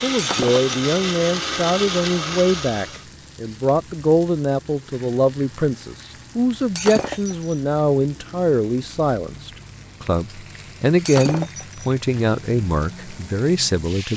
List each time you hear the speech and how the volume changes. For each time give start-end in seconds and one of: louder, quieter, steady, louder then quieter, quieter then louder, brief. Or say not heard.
0.0-14.1 steady.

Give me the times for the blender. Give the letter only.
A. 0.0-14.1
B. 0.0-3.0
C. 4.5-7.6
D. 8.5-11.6
B.